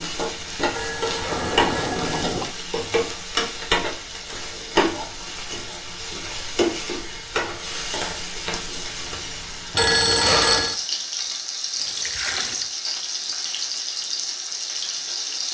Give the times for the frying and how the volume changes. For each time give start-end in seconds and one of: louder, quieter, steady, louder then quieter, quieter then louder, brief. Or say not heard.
0.0-15.5 steady.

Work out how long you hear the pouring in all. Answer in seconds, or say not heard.
2 s.